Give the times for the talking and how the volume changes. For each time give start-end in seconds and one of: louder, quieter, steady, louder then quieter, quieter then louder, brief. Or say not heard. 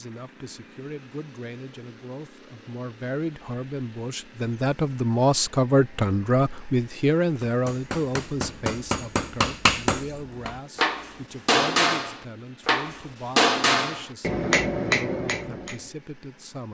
0.0-16.7 louder then quieter.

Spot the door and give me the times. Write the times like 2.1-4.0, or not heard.
not heard.